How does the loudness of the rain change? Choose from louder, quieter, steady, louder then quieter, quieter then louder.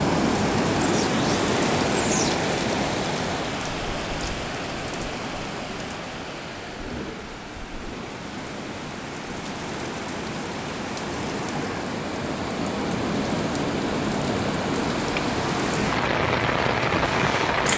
quieter then louder.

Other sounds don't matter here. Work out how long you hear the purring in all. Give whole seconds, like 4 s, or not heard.
2 s.